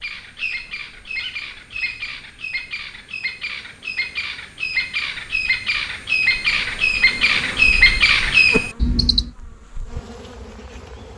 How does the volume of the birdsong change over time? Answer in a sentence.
The loudness of the birdsong goes up.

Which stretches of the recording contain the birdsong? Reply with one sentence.
The birdsong can be heard from 0.0 to 9.3 s.